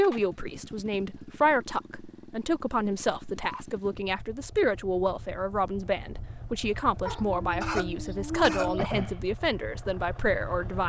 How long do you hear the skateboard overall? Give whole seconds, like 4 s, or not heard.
not heard.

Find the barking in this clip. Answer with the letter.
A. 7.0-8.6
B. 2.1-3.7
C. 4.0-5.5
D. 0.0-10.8
A.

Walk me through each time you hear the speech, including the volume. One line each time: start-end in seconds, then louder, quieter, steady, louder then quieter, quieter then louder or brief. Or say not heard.
0.0-10.8 steady.